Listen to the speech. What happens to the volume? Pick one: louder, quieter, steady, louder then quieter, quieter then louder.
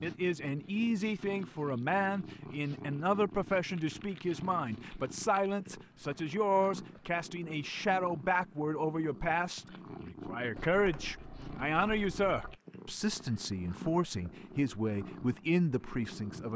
steady.